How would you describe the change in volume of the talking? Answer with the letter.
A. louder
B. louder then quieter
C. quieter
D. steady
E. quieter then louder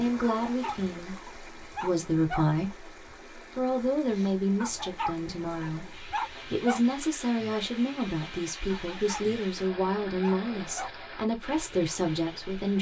D.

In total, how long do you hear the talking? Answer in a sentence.
The talking can be heard for 13 seconds in total.